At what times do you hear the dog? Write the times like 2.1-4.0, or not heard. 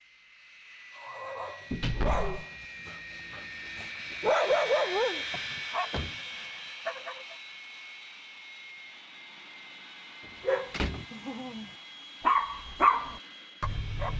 0.9-7.3, 10.4-14.1.